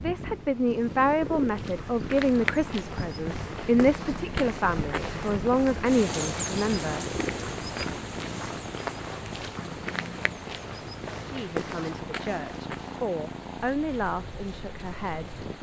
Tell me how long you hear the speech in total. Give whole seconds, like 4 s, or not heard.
11 s.